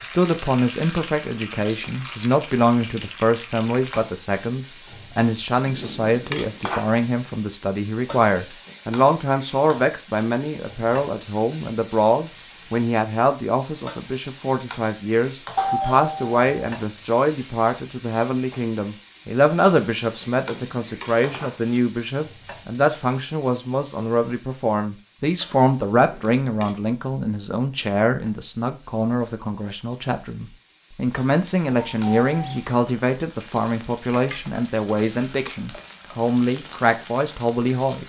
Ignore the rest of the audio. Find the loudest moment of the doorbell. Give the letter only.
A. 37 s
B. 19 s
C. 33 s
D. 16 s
D.